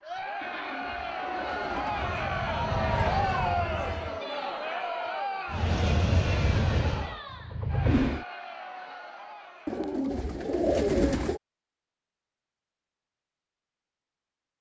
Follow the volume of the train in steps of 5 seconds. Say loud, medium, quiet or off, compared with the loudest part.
medium, loud, off.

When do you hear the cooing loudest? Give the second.
11 s.